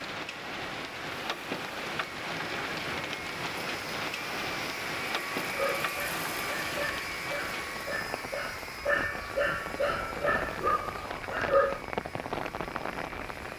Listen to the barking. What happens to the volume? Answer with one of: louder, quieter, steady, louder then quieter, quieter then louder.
louder.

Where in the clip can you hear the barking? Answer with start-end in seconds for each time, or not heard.
5.4-11.8.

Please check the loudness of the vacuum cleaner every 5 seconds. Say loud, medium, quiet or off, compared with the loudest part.
loud, loud, medium.